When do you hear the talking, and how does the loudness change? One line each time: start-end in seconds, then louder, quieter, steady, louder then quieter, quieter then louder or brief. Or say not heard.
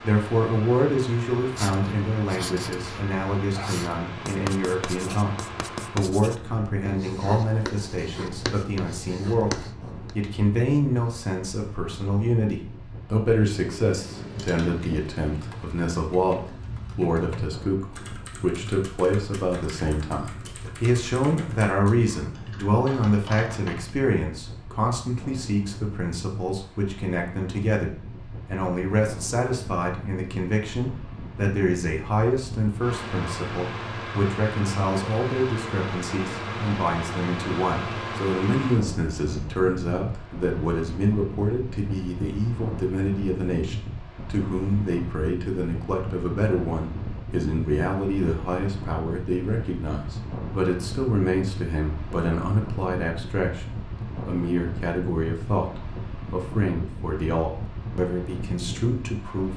0.0-59.5 steady.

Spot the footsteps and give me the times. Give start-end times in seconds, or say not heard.
not heard.